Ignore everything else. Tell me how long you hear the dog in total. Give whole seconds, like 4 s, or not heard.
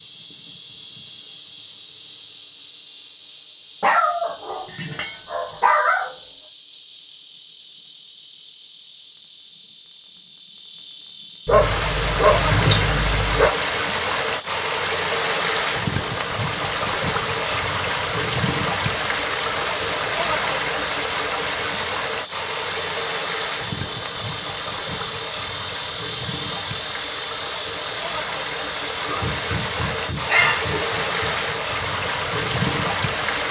7 s.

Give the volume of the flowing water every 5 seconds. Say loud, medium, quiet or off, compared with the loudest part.
off, off, loud, loud, loud, medium, loud.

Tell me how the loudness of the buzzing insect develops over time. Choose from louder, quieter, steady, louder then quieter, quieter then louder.
louder.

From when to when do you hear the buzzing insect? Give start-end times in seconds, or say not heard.
0.0-33.4.